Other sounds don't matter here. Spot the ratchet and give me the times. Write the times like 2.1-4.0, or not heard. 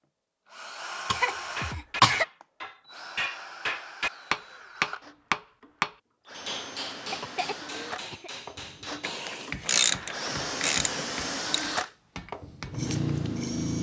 9.0-11.7.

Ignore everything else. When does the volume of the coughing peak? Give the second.
2 s.